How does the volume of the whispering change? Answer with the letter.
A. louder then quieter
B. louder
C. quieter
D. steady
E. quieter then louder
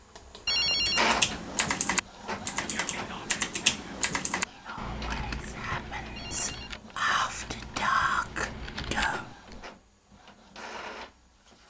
B.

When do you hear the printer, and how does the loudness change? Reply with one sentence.
You can hear the printer from 0.0 to 11.6 s, getting quieter.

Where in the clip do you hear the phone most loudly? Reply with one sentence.
The loudest moment of the phone is at 1 second.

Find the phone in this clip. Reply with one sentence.
You can hear the phone from 0.5 to 1.2 s and from 6.2 to 7.1 s.